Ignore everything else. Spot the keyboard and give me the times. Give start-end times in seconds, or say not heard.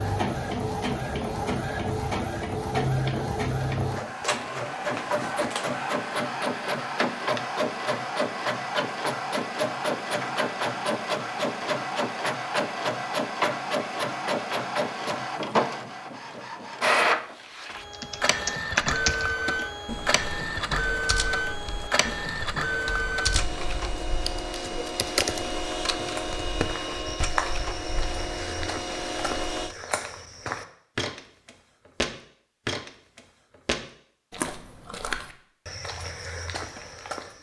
17.9-25.6.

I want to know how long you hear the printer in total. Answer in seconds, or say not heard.
30 s.